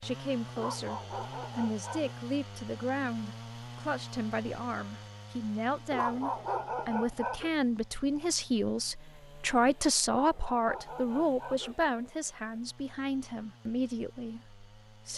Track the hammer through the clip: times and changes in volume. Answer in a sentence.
The hammer can't be heard in this clip.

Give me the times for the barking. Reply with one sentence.
The barking can be heard from 0.6 to 2.1 s, from 5.9 to 7.5 s and from 10.2 to 11.9 s.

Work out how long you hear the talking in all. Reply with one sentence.
You can hear the talking for 15 seconds altogether.